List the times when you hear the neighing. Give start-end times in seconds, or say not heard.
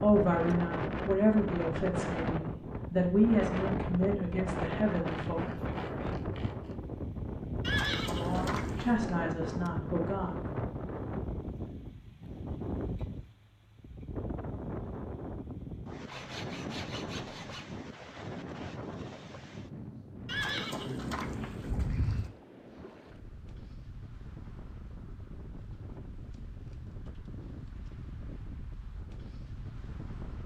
7.6-9.0, 20.2-22.3.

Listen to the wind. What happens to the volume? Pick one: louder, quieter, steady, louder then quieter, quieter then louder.
quieter.